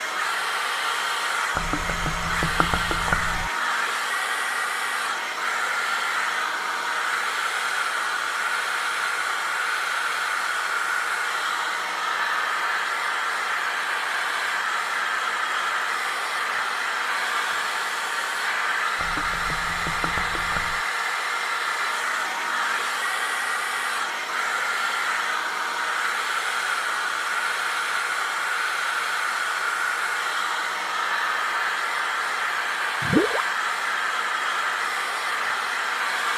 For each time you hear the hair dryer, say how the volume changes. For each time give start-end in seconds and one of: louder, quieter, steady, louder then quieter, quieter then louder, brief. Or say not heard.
0.0-36.3 steady.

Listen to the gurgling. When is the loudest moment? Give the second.
33 s.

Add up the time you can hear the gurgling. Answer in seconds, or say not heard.
4 s.